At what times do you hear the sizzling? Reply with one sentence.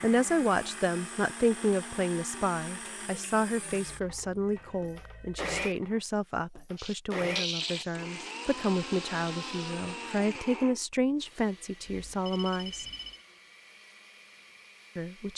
The sizzling can be heard from 6.8 to 9.7 s.